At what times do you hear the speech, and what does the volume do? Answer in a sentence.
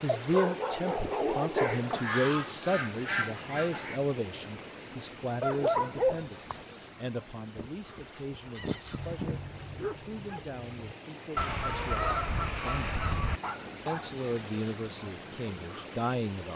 You can hear the speech from 0.0 to 13.2 s, getting quieter; and briefly from 13.8 to 16.5 s.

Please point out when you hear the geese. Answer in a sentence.
You can hear the geese from 1.6 to 4.0 s, from 7.5 to 9.4 s and from 11.3 to 13.4 s.